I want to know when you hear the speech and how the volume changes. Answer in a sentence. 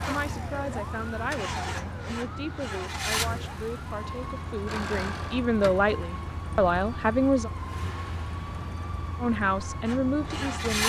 The speech can be heard from 0.0 to 7.5 s, getting louder; and briefly from 9.2 to 10.8 s.